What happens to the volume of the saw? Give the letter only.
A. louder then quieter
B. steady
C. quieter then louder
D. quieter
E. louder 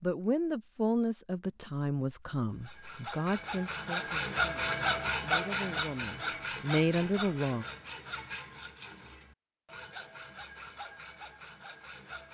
D.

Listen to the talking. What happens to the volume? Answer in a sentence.
The volume of the talking goes down, then up.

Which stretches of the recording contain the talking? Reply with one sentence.
You can hear the talking from 0.0 to 7.7 s.